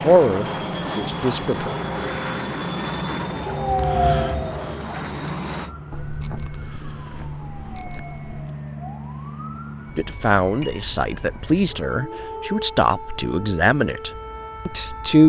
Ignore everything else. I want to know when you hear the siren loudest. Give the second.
4 s.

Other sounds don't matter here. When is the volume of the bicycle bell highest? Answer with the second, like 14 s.
6 s.